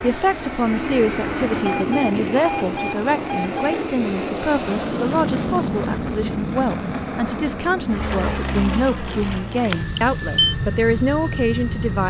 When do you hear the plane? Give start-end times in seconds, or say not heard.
0.0-12.0.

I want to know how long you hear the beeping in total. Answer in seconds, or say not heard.
3 s.